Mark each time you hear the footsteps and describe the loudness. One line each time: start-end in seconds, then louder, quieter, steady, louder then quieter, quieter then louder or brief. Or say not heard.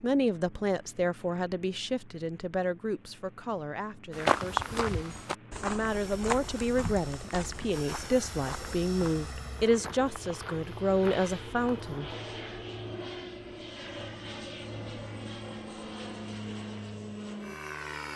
4.1-12.0 quieter.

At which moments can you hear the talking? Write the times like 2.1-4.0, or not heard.
0.0-12.2.